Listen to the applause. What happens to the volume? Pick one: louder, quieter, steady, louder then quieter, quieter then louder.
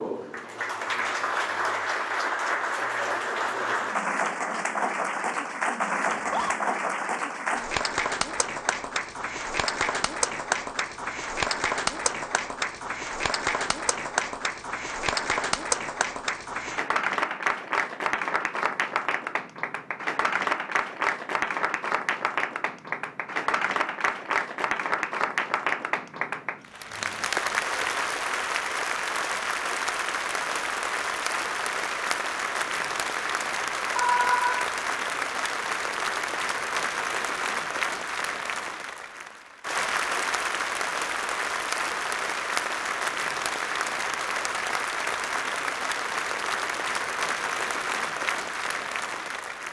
steady.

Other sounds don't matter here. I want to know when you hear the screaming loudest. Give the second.
34 s.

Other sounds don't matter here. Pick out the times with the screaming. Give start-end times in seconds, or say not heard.
6.1-6.5, 34.0-34.7.